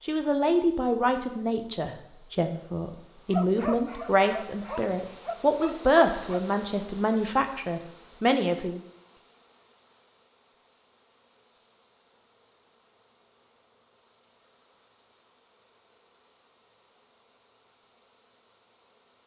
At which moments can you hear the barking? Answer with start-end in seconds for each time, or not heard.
3.3-6.5.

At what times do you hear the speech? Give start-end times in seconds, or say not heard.
0.0-8.8.